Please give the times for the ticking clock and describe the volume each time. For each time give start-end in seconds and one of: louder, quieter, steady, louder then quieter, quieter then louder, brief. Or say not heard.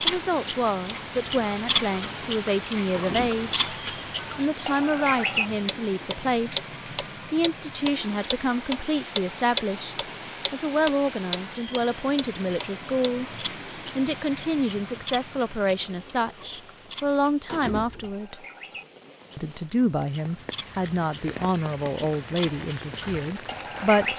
0.0-24.1 louder then quieter.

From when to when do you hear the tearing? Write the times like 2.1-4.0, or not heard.
not heard.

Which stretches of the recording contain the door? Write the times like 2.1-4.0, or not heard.
2.9-3.5, 17.4-18.1.